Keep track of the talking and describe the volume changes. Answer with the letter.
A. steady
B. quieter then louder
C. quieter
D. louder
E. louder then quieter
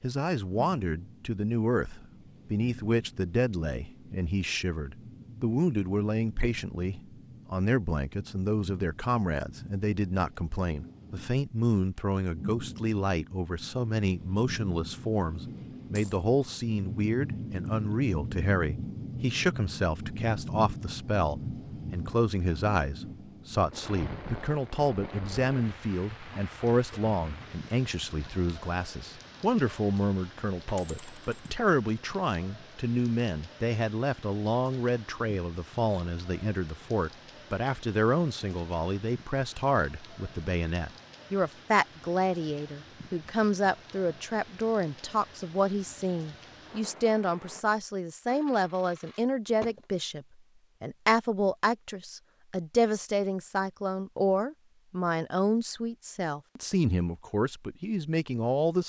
A.